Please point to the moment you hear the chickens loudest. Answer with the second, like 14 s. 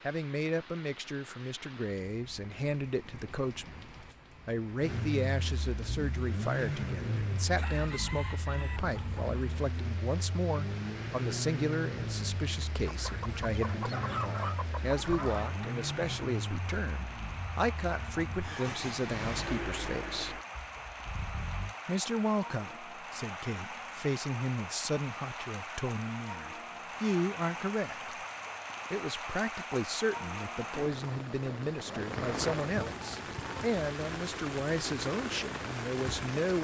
14 s.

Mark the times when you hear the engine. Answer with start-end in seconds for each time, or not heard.
4.8-21.8.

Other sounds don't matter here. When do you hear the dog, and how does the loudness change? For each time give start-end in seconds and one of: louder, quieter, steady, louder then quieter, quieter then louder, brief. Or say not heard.
not heard.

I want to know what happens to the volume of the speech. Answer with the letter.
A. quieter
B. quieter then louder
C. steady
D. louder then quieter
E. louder
C.